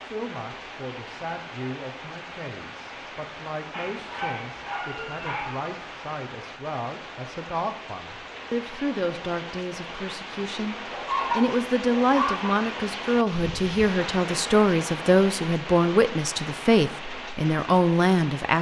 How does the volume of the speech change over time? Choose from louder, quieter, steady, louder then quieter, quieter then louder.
louder.